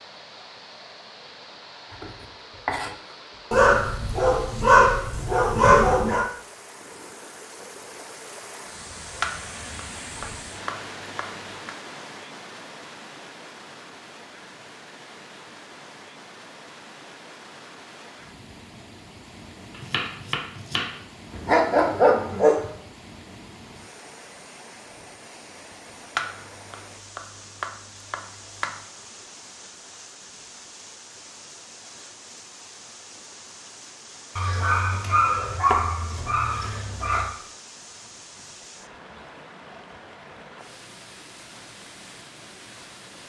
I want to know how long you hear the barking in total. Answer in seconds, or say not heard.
7 s.